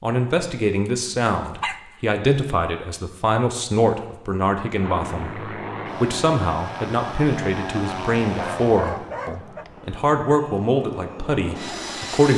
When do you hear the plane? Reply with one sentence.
The plane can be heard from 4.8 to 12.3 s.